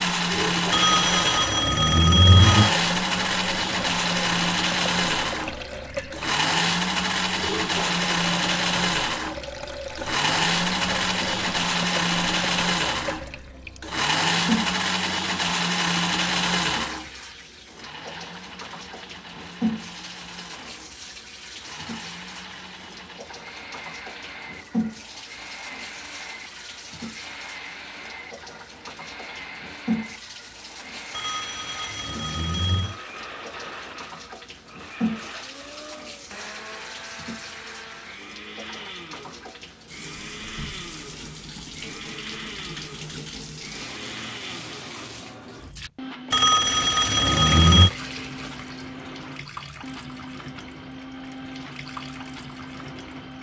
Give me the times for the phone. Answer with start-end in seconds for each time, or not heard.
0.7-2.7, 31.1-33.0, 46.3-47.9.